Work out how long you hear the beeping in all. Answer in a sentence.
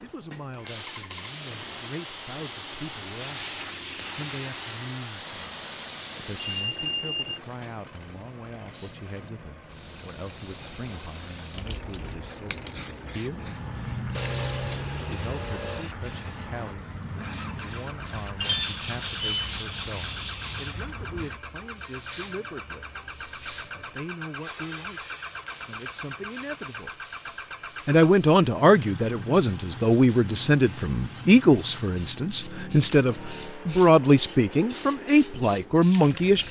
The beeping can be heard for 2 seconds in total.